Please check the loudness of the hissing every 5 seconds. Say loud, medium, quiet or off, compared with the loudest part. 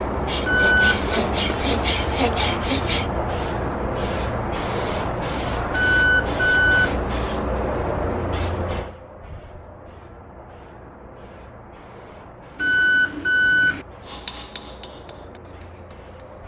loud, loud, quiet, quiet.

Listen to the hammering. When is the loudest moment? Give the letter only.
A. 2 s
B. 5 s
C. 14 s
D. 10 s
C.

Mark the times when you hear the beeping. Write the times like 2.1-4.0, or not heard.
0.5-1.1, 5.7-7.0, 12.6-13.8.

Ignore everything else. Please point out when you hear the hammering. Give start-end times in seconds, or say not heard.
14.0-16.4.